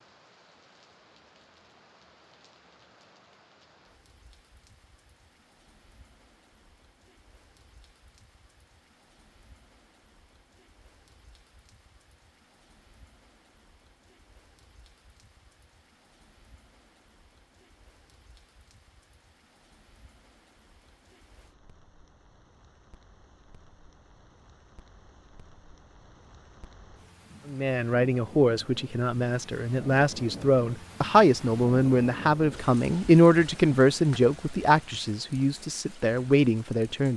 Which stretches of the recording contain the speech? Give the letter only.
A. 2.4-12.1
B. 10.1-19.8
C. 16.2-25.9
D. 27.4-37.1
D.